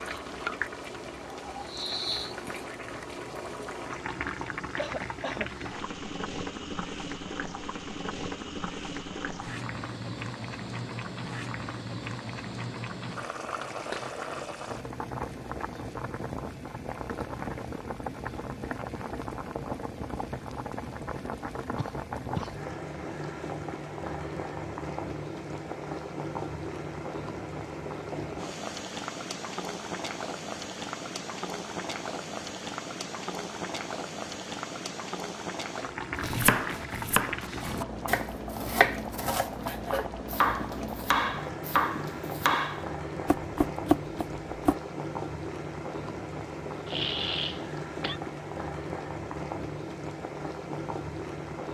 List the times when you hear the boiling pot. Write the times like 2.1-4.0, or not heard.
0.0-51.6.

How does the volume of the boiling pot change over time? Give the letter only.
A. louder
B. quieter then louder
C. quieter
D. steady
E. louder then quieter
D.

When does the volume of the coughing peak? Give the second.
47 s.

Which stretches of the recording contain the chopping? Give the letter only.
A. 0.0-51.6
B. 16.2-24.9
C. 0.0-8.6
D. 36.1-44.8
D.